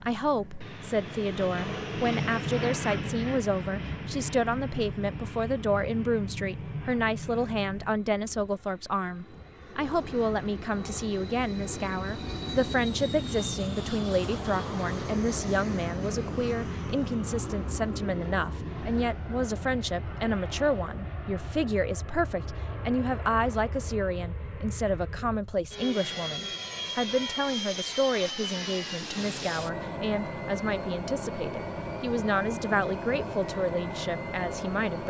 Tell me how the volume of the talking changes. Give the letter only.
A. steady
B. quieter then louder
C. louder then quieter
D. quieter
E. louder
A.